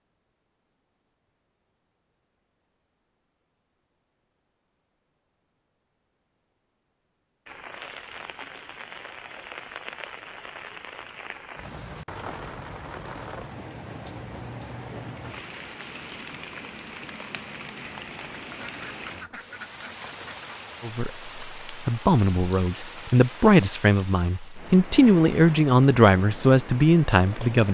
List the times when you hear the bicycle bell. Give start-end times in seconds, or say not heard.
not heard.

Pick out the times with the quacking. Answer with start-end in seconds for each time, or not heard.
18.6-20.6.